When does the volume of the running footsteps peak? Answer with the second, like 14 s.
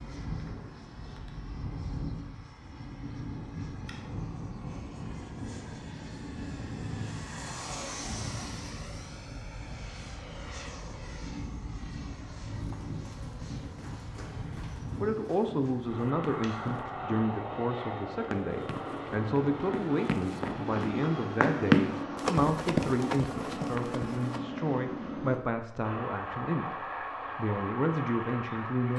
22 s.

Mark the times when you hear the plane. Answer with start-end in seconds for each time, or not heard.
0.0-28.9.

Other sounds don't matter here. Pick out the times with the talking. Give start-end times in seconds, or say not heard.
14.9-28.9.